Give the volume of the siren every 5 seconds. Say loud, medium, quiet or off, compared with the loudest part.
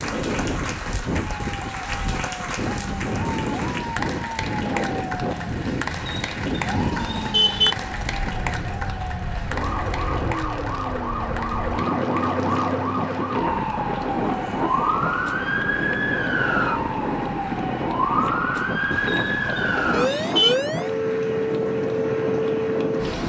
medium, medium, loud, loud, loud.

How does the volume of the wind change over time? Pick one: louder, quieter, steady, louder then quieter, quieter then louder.
steady.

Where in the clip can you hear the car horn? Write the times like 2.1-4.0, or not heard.
5.9-7.8, 18.9-20.6.